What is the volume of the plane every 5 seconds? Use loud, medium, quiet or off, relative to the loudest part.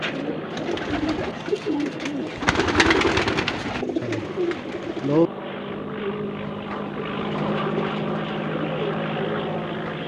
medium, loud.